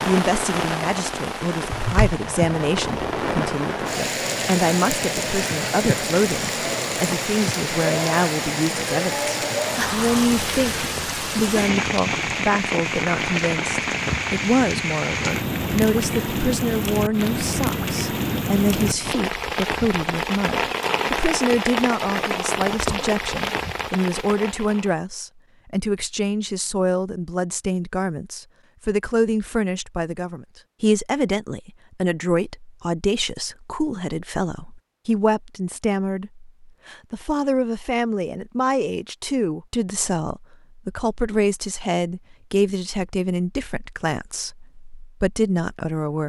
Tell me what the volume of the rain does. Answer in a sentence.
The volume of the rain stays about the same.